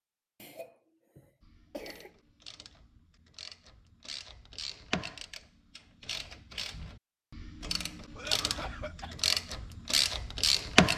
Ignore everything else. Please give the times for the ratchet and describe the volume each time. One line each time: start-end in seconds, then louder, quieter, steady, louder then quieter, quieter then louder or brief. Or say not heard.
1.4-10.9 louder.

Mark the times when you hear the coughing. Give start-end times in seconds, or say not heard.
0.4-2.1, 8.2-9.2.